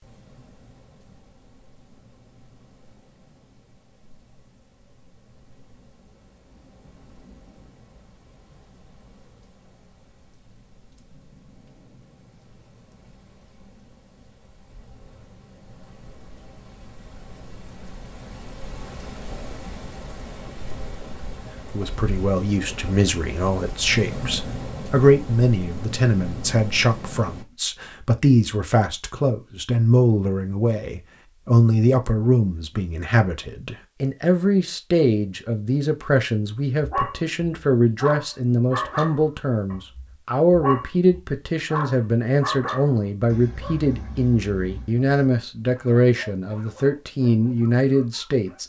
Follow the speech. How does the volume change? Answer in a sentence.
The volume of the speech stays about the same.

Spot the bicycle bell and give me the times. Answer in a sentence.
The bicycle bell can't be heard in this clip.